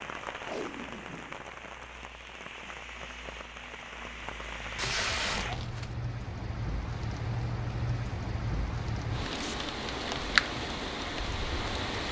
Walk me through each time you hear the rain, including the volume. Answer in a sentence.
You can hear the rain from 0.0 to 12.0 s, getting louder.